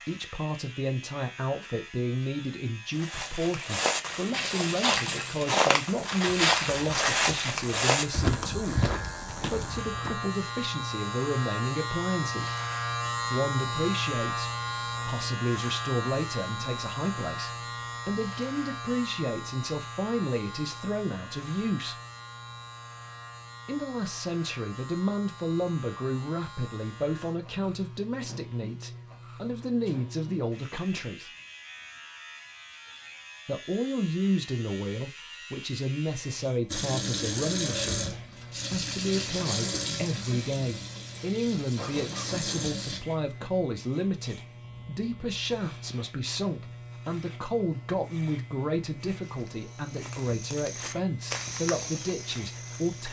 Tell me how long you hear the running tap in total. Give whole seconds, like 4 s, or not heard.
6 s.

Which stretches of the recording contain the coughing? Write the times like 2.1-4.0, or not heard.
41.8-42.7.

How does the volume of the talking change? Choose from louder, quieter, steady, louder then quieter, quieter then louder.
steady.